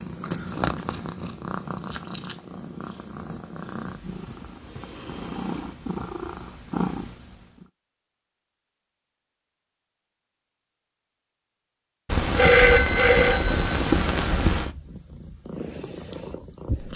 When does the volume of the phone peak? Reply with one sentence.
The loudest moment of the phone is at 13 seconds.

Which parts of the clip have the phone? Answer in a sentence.
You can hear the phone from 12.1 to 14.7 s.